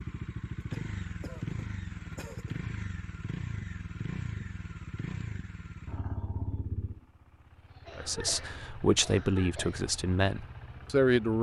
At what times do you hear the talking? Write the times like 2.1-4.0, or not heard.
8.0-11.3.